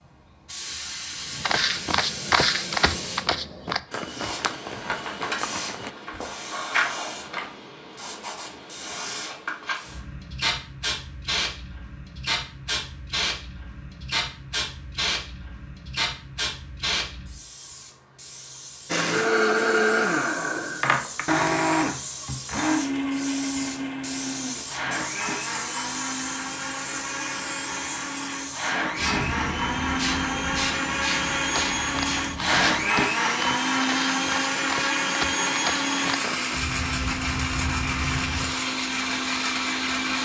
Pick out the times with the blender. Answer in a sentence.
You can hear the blender from 18.9 to 40.2 s.